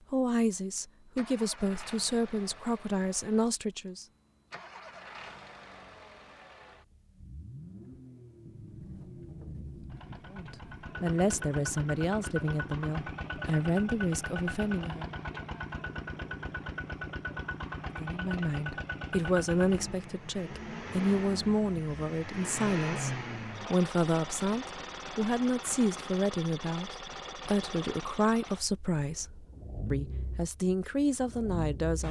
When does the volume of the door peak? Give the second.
10 s.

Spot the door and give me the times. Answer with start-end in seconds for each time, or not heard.
8.4-10.9.